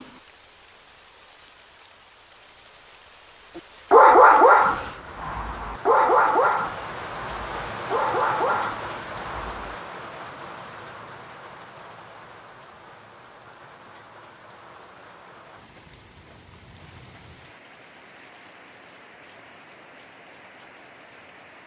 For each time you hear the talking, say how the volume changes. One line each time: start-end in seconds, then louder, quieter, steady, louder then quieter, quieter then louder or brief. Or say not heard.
not heard.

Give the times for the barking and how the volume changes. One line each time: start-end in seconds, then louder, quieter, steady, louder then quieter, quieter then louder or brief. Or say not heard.
3.9-9.8 quieter.